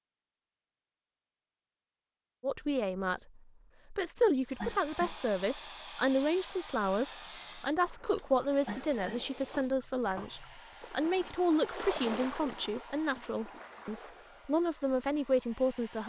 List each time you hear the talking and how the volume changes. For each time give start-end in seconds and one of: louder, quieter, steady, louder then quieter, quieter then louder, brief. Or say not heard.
2.4-16.0 steady.